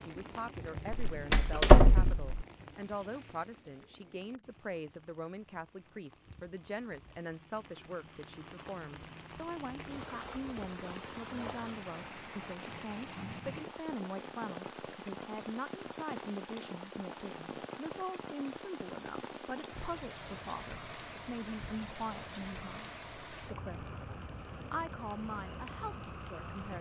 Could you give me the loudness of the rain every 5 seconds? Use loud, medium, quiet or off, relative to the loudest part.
medium, medium, loud, loud, loud, loud.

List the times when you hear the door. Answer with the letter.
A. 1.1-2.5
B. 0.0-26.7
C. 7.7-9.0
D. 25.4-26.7
A.